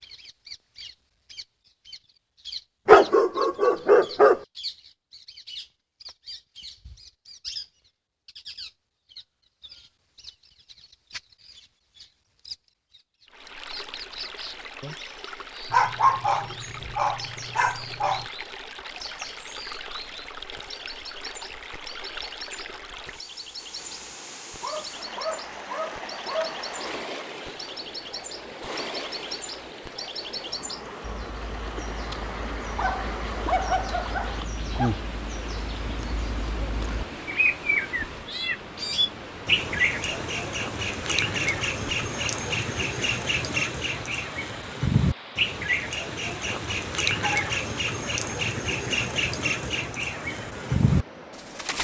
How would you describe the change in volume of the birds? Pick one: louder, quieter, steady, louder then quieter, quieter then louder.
louder.